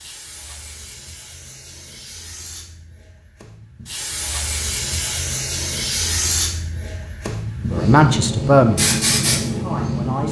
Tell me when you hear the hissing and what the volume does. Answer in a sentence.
You can hear the hissing from 0.0 to 10.2 s, getting louder.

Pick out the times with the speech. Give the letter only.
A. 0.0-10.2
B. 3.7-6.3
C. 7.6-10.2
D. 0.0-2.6
C.